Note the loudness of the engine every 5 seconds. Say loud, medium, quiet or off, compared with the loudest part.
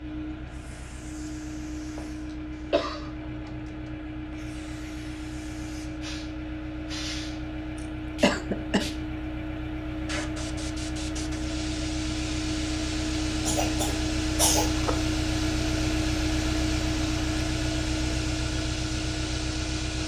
medium, medium, loud, loud.